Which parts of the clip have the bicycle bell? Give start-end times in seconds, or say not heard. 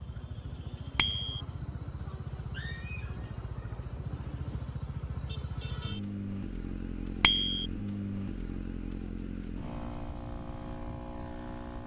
0.9-1.4, 7.2-7.7.